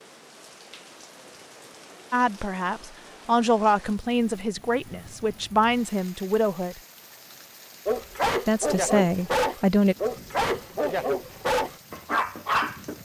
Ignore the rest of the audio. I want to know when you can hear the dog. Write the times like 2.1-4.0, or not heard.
7.8-12.9.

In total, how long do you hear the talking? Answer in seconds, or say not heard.
6 s.